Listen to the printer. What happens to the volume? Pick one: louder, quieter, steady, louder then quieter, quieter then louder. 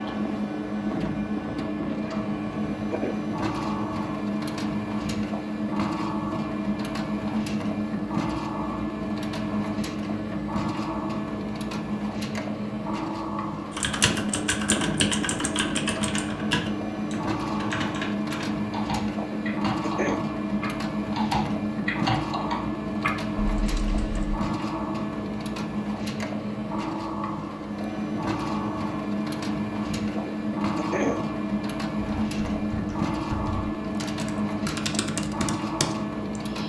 steady.